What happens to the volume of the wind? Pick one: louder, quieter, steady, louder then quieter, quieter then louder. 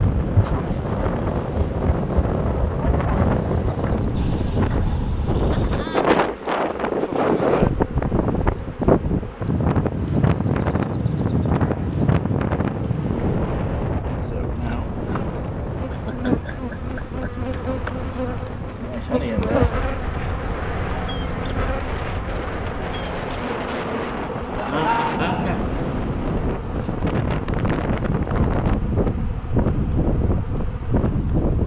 quieter then louder.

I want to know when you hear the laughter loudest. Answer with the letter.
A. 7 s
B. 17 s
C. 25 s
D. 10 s
C.